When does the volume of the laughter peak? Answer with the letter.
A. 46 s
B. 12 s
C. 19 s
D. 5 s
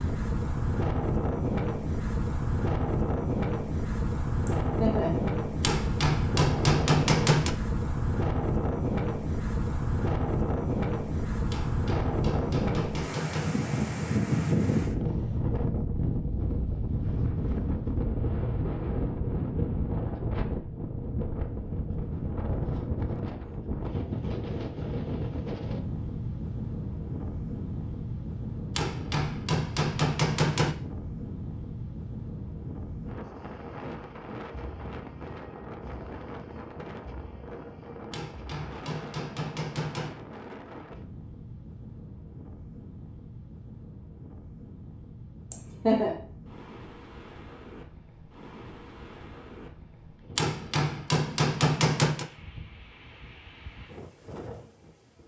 A.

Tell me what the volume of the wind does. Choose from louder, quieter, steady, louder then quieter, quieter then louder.
quieter.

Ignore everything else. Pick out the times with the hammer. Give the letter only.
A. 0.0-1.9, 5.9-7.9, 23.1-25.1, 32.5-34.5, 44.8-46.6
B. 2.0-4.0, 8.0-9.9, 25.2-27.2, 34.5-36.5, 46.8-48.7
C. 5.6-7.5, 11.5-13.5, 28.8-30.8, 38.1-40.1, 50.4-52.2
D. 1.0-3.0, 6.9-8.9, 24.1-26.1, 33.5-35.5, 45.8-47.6
C.